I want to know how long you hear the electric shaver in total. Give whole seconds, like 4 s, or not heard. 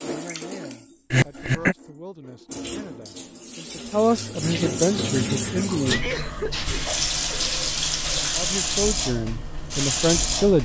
not heard.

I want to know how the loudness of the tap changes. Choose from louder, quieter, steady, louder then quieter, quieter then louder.
louder.